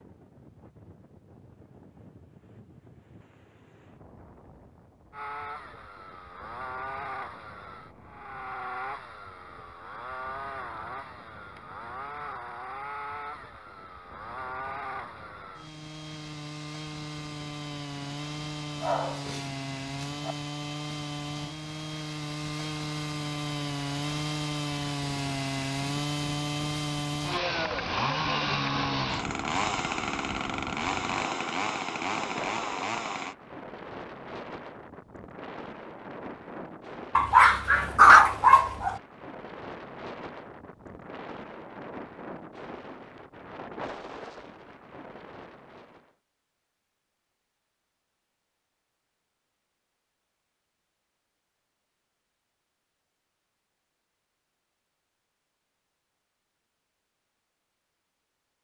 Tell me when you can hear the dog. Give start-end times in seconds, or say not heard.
18.8-20.4, 37.1-39.0.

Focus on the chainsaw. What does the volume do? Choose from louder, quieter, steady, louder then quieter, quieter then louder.
louder.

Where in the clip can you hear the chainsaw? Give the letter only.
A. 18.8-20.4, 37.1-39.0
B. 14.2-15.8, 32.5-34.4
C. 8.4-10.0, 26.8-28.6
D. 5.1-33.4
D.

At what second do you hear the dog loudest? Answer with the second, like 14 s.
38 s.